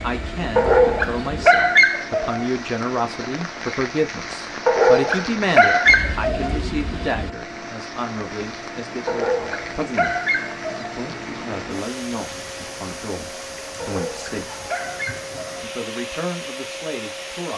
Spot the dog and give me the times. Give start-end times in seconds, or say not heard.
0.6-2.5, 4.7-6.5, 9.1-10.9, 13.8-15.6.